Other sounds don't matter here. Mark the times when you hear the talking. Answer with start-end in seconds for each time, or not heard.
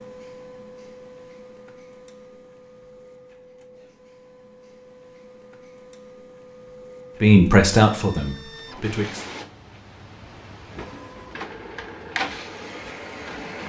7.2-9.2.